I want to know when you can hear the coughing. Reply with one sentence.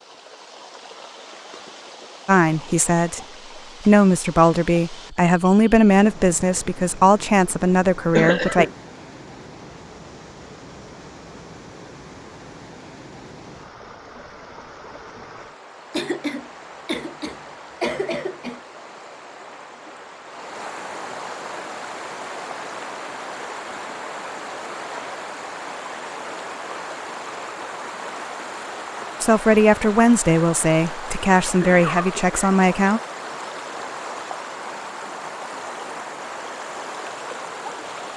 You can hear the coughing from 8.1 to 8.7 s, from 15.9 to 18.6 s and from 31.4 to 32.5 s.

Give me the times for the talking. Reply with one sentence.
You can hear the talking from 2.2 to 3.2 s, from 3.9 to 8.7 s and from 29.2 to 33.0 s.